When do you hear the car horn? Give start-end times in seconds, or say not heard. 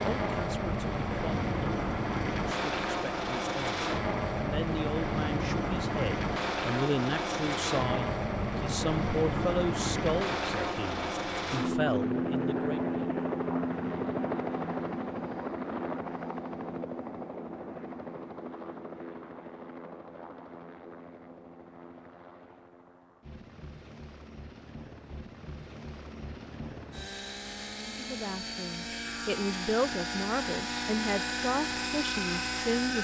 not heard.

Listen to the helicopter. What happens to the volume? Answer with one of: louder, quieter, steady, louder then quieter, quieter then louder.
quieter then louder.